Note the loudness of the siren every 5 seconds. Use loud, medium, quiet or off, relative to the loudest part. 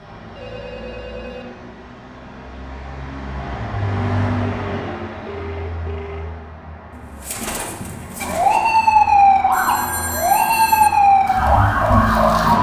off, loud, loud.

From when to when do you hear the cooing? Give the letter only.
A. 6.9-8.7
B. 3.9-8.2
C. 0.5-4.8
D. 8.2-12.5
A.